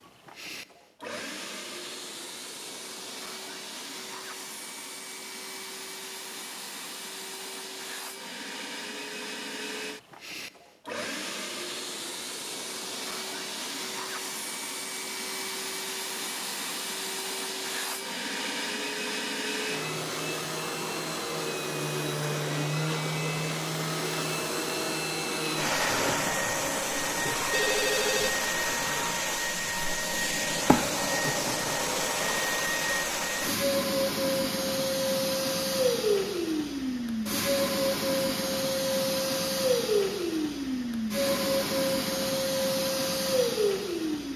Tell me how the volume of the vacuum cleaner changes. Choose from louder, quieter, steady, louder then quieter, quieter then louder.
louder.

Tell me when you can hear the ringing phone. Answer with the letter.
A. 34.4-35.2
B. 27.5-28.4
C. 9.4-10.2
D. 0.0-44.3
B.